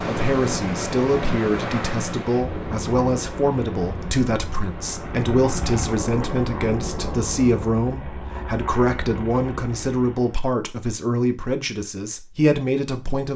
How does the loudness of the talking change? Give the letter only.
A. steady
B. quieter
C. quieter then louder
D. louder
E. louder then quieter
A.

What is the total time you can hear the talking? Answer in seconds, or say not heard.
13 s.